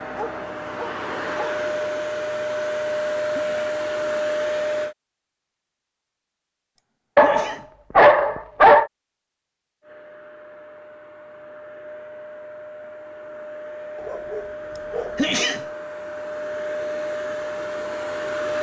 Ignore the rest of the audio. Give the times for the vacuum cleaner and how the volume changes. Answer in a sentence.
The vacuum cleaner can be heard from 0.0 to 5.0 s, getting louder; and from 9.8 to 18.5 s, getting louder.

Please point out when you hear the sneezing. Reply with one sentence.
You can hear the sneezing from 3.3 to 3.8 s, from 7.2 to 7.7 s and from 15.2 to 15.7 s.